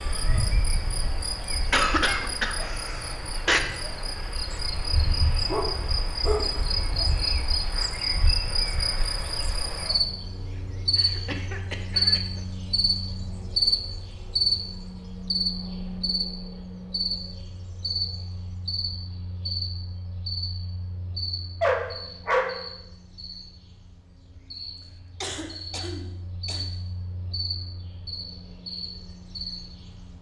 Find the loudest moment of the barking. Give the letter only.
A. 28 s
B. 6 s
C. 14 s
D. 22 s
D.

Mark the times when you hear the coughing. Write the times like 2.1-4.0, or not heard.
1.7-3.6, 10.9-12.4, 25.2-26.6.